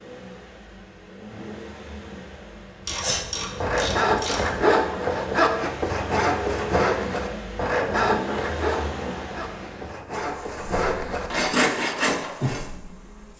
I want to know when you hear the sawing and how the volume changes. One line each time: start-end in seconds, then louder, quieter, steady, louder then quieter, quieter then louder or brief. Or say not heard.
2.9-12.7 quieter then louder.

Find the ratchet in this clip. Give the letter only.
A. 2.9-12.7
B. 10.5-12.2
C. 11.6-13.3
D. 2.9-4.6
D.